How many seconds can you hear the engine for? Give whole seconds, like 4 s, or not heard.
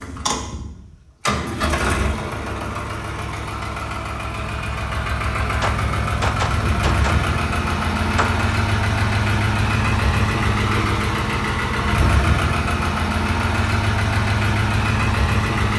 16 s.